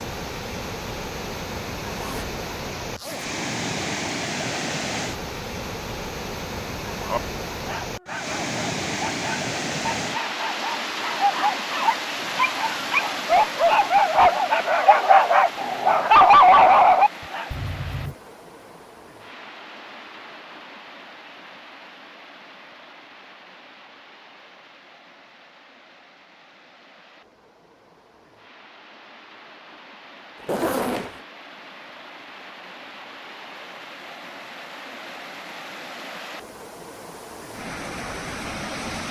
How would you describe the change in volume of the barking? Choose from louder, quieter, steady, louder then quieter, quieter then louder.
louder.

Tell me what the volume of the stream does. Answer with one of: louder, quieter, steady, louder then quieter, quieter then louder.
quieter then louder.